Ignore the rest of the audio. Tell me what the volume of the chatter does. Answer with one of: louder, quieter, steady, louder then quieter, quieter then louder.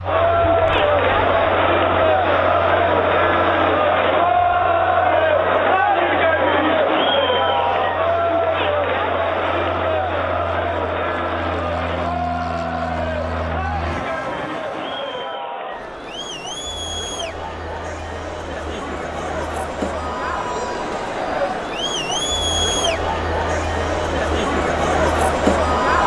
quieter then louder.